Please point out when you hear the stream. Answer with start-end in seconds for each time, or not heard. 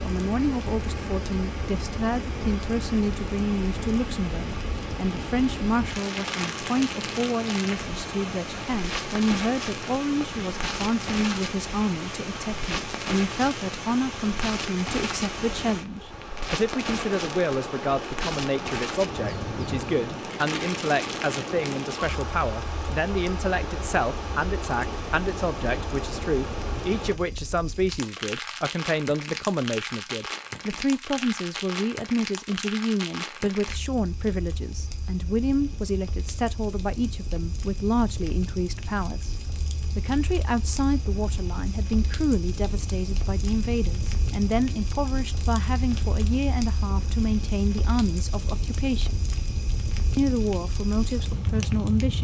0.0-27.1.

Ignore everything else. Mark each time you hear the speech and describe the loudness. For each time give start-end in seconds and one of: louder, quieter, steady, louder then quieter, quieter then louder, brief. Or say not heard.
0.0-39.4 steady
40.0-49.1 steady
50.1-52.1 brief.